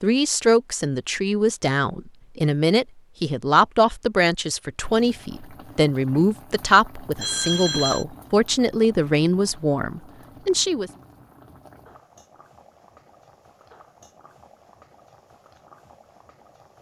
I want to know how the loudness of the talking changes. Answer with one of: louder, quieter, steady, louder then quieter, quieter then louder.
steady.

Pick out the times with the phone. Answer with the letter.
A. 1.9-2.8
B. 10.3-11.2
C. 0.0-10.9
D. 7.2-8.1
D.